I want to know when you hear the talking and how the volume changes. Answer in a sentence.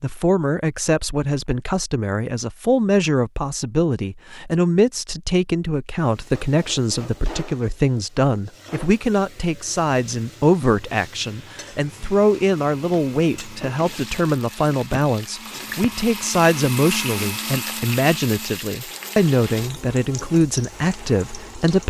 The talking can be heard from 0.0 to 21.8 s, at a steady volume.